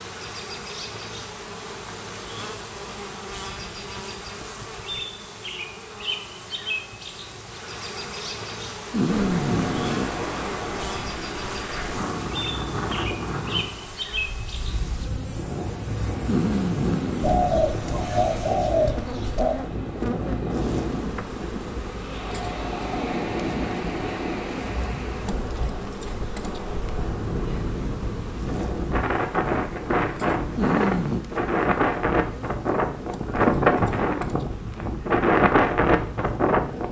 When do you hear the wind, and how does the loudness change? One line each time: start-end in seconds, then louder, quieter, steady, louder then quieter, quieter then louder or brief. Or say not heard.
9.1-36.8 louder.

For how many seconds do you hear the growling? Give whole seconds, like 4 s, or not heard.
3 s.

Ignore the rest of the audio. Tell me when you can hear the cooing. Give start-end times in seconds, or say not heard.
17.2-19.6.